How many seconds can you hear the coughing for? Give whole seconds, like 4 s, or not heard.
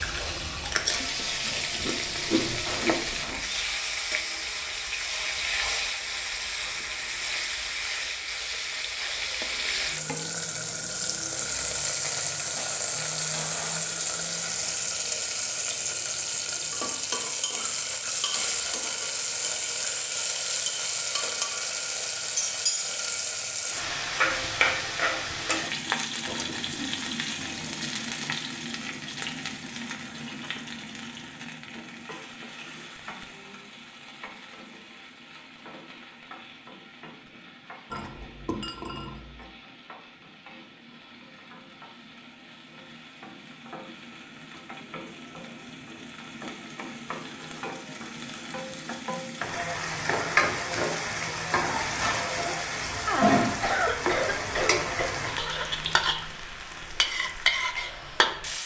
5 s.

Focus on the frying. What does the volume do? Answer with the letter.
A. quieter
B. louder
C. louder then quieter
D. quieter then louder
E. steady
D.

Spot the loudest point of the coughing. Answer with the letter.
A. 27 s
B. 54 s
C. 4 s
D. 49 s
B.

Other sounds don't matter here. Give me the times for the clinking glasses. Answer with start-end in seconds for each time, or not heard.
37.9-39.5.